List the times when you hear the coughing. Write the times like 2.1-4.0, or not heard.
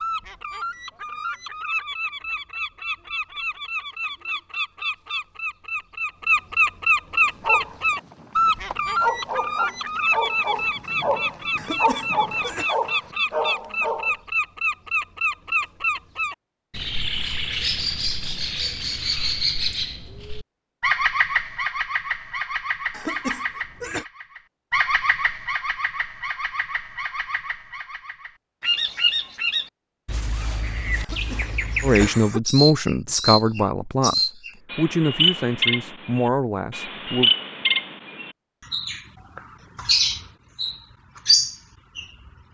11.6-12.7, 22.9-24.1, 31.0-32.4.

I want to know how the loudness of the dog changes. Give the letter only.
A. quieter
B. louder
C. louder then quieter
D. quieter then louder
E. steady
B.